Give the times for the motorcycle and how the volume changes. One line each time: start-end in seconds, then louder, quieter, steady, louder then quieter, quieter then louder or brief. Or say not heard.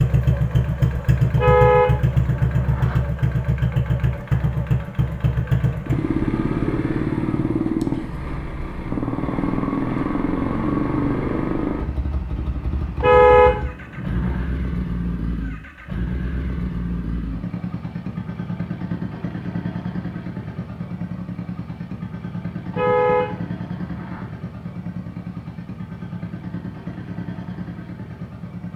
0.0-28.7 quieter.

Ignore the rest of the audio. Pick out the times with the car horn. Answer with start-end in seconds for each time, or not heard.
1.4-3.0, 12.9-14.4, 22.7-24.2.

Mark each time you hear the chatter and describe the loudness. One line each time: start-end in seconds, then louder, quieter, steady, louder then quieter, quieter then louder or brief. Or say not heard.
not heard.